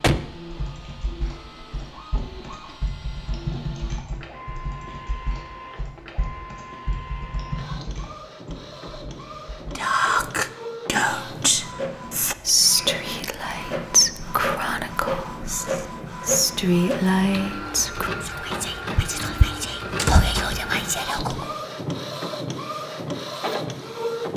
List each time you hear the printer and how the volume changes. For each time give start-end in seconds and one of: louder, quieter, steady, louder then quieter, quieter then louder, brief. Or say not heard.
0.0-24.3 louder.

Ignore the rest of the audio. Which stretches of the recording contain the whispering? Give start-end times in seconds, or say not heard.
9.8-21.5.